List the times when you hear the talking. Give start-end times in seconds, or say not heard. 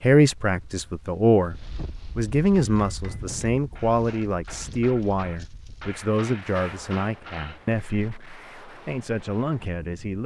0.0-10.2.